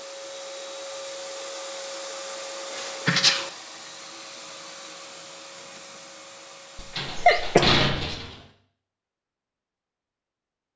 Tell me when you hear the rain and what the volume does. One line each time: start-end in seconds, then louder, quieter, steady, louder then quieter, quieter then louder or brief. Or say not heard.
not heard.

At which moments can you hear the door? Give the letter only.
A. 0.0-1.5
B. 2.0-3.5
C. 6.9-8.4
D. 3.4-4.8
C.